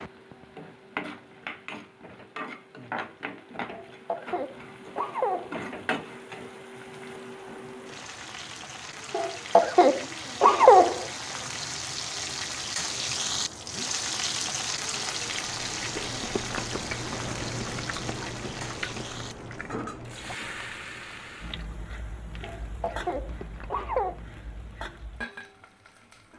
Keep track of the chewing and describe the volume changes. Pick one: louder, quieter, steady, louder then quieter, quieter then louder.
quieter.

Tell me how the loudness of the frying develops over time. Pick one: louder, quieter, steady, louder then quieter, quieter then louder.
louder then quieter.